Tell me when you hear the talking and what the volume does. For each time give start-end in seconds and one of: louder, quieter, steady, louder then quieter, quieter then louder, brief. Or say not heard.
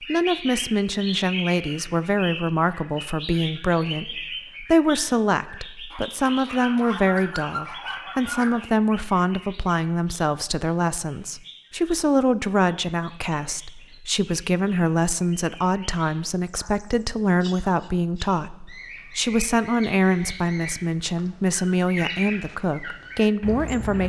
0.0-24.0 steady.